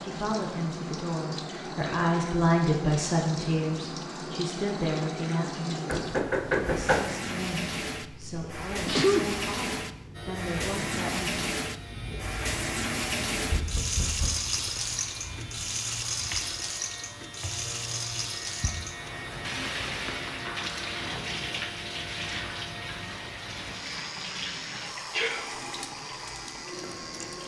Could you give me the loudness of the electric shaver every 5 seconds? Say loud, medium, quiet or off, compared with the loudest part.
off, off, loud, loud, loud, loud.